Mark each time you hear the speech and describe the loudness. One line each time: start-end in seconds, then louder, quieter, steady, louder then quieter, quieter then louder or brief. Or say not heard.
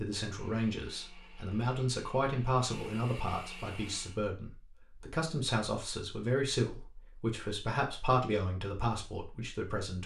0.0-10.0 steady.